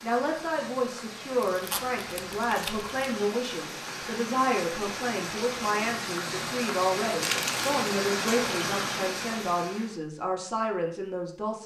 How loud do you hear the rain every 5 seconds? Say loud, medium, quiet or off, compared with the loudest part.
medium, loud, off.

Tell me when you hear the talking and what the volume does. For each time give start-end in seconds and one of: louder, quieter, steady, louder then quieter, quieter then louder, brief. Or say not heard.
0.0-11.6 steady.